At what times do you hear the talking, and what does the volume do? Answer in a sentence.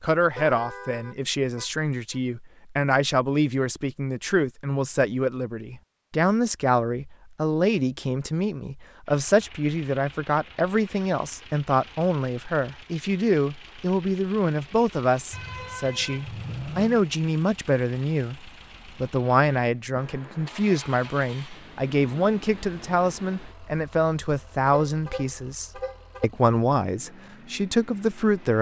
The talking can be heard from 0.0 to 28.5 s, at a steady volume.